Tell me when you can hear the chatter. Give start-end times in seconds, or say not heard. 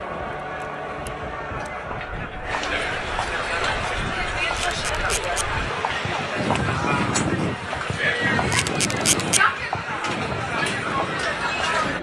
0.0-11.9.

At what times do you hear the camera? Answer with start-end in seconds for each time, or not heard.
0.6-1.7, 4.5-5.5, 8.5-9.4.